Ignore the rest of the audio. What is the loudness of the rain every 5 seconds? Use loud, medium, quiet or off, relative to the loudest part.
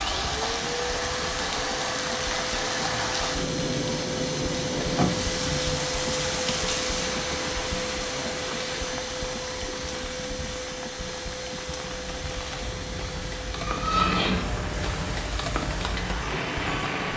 loud, loud, medium, loud.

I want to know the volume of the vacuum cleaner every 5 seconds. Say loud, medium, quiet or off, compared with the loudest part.
loud, loud, medium, medium.